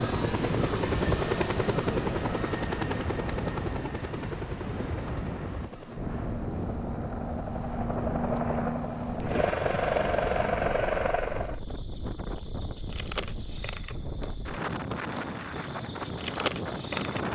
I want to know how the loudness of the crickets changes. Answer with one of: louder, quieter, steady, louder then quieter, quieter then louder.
louder.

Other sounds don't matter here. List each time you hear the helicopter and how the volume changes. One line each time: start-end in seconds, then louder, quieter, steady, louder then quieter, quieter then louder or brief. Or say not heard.
0.0-11.6 quieter then louder.